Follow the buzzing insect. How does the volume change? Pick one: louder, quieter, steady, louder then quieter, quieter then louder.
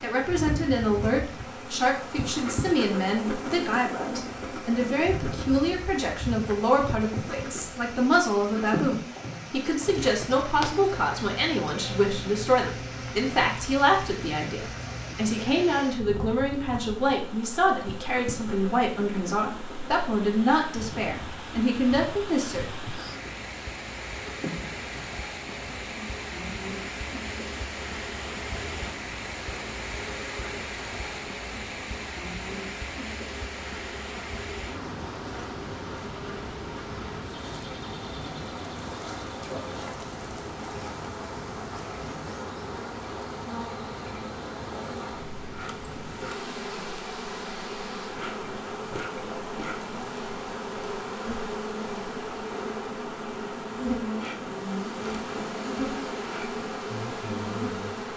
quieter then louder.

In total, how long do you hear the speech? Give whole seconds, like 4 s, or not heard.
23 s.